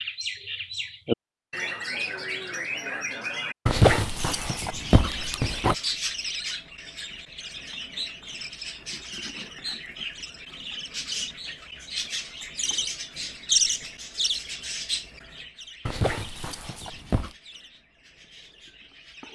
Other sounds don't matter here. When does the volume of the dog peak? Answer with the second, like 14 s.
4 s.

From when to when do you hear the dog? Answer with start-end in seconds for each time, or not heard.
3.6-5.8, 15.8-17.4.